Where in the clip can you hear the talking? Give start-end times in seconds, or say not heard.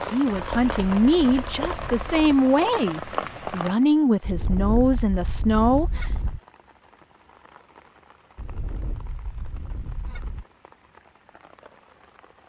0.1-6.2.